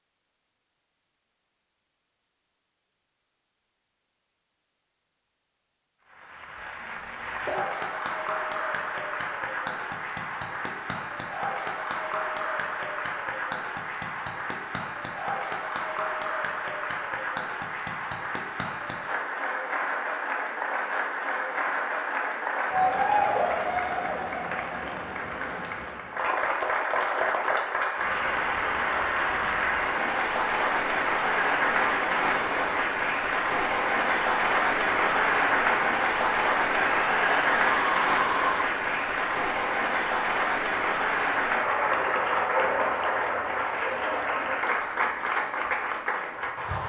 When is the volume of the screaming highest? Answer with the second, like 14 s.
38 s.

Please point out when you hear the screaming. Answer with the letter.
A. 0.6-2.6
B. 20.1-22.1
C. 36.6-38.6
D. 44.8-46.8
C.